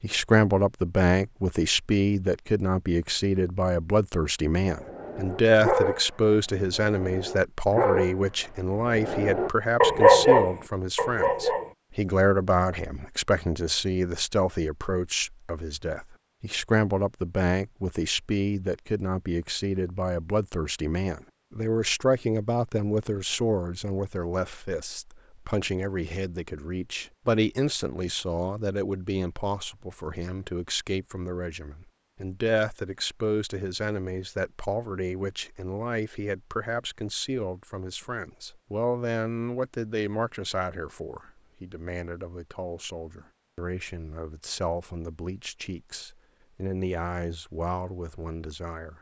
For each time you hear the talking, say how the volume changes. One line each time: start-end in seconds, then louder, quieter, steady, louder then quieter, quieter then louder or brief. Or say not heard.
0.0-48.9 quieter.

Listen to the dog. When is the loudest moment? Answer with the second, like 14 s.
10 s.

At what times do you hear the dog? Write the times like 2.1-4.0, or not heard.
4.7-11.7.